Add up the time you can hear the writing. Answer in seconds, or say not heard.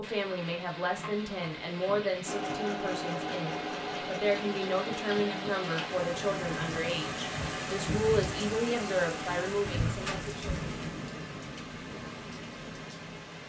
not heard.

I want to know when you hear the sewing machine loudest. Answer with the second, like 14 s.
3 s.